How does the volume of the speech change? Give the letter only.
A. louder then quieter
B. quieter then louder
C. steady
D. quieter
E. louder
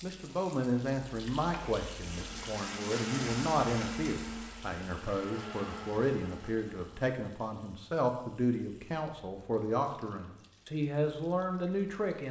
C.